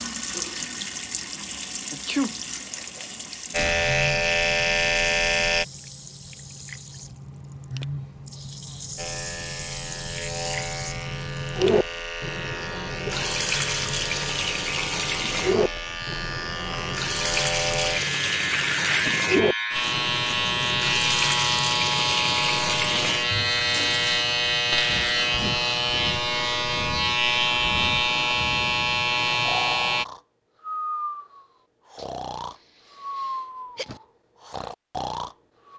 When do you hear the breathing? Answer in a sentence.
The breathing can be heard from 24.9 to 35.7 s.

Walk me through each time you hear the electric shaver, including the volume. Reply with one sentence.
The electric shaver can be heard briefly from 3.5 to 5.7 s; and from 8.9 to 30.1 s, getting louder.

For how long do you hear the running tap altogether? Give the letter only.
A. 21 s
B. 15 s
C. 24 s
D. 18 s
C.